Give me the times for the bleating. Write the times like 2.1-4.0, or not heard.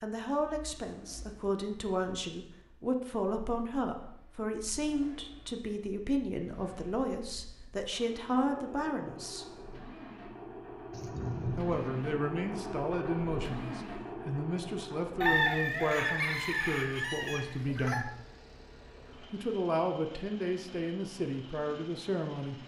not heard.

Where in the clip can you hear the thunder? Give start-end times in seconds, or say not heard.
10.9-11.9.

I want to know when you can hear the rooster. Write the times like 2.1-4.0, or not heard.
15.2-18.1.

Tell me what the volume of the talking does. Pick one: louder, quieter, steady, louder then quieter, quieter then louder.
steady.